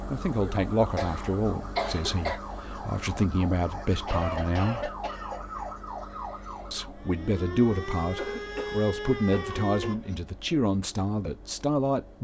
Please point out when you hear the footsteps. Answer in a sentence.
You can't hear the footsteps here.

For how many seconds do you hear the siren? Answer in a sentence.
The siren can be heard for 10 seconds in total.